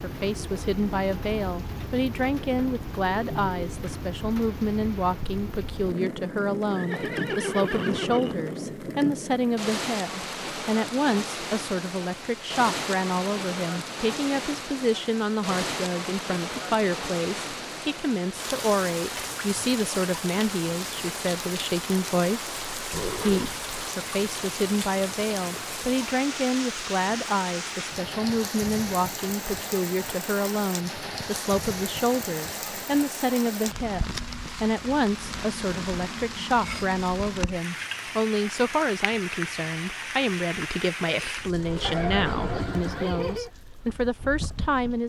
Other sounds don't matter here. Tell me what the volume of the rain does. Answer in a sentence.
The volume of the rain stays about the same.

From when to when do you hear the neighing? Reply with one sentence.
You can hear the neighing from 6.7 to 8.7 s, from 22.9 to 23.7 s and from 41.8 to 43.5 s.